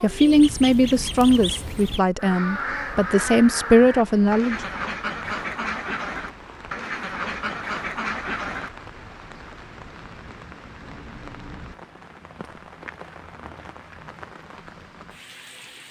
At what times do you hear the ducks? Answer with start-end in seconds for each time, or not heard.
0.1-8.7.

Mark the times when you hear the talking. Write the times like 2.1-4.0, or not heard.
0.0-4.6.